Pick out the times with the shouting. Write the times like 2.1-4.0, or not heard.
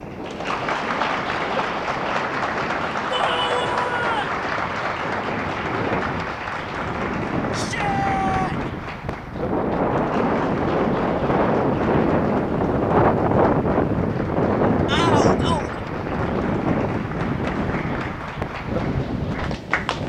3.1-4.3, 7.5-8.6, 14.8-15.8.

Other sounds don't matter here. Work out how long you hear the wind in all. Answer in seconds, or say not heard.
20 s.